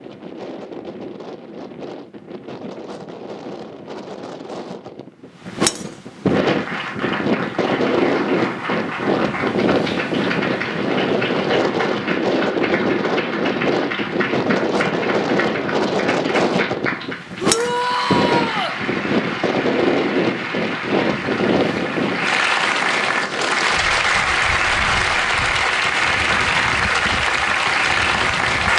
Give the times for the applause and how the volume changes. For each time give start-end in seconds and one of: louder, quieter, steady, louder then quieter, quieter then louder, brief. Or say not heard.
6.3-28.7 louder.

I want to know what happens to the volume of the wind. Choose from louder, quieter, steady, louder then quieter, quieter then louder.
louder then quieter.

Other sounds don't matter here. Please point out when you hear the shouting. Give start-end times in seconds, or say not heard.
17.4-18.8.